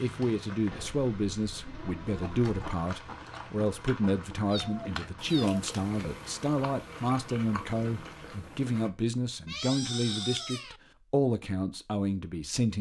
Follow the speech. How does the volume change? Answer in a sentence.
The loudness of the speech stays about the same.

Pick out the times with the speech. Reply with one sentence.
The speech can be heard from 0.0 to 12.7 s.